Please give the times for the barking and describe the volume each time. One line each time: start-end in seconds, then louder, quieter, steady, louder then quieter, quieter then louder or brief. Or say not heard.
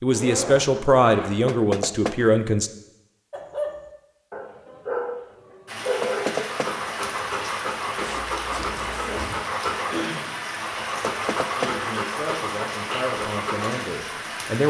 3.3-13.7 steady.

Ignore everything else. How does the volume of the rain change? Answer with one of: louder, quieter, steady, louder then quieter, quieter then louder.
steady.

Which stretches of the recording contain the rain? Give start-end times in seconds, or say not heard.
5.7-14.6.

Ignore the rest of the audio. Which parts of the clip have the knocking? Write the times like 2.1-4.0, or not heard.
1.4-2.2, 6.0-6.8, 11.0-11.8.